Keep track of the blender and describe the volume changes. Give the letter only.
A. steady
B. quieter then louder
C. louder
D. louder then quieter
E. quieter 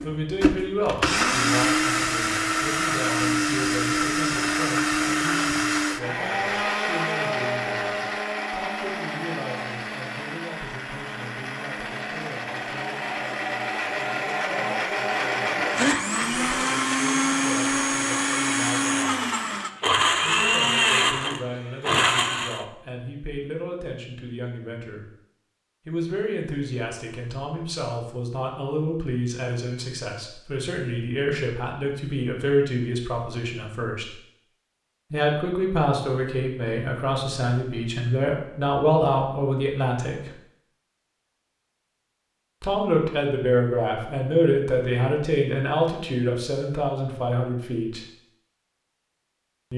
B.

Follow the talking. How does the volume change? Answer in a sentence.
The loudness of the talking goes down, then up.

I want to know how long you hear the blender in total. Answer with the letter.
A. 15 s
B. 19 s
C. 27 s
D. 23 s
D.